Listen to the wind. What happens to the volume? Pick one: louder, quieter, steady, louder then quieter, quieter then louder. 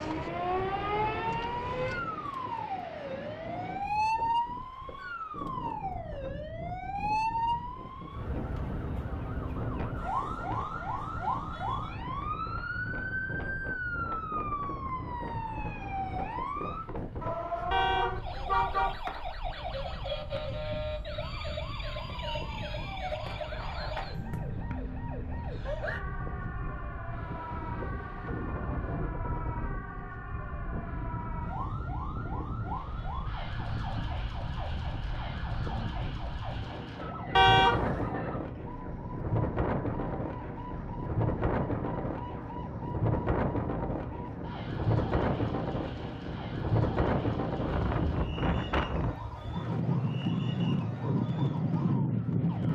louder.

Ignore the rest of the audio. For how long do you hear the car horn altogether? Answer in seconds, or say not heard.
2 s.